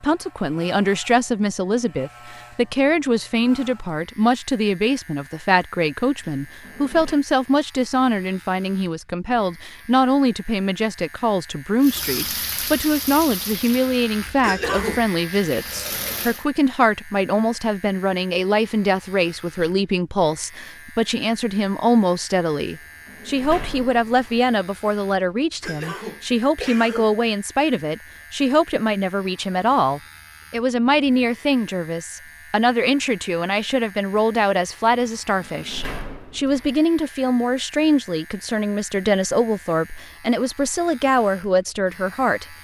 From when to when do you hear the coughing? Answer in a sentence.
You can hear the coughing from 14.4 to 15.1 s and from 25.6 to 27.2 s.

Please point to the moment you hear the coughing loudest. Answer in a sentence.
The volume of the coughing peaks at 15 seconds.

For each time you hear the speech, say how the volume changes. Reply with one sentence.
The speech can be heard from 0.0 to 42.5 s, at a steady volume.